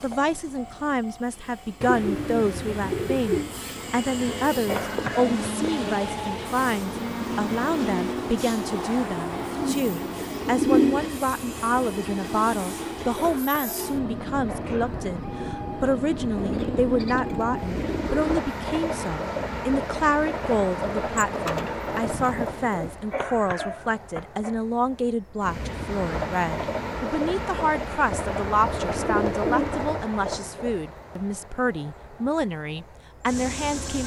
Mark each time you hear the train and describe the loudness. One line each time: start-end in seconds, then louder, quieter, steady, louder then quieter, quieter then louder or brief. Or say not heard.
0.0-34.0 steady.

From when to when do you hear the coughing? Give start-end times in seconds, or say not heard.
4.7-5.4, 13.2-15.1, 23.1-24.6.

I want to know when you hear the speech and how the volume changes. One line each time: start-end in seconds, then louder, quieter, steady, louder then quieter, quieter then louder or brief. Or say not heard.
0.0-34.0 steady.